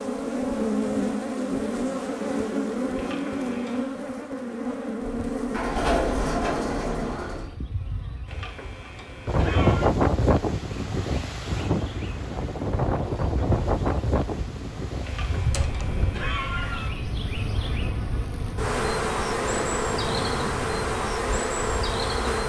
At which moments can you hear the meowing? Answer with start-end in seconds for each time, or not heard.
3.0-3.9, 8.2-9.9, 15.0-16.9.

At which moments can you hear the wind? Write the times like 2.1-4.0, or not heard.
9.2-22.4.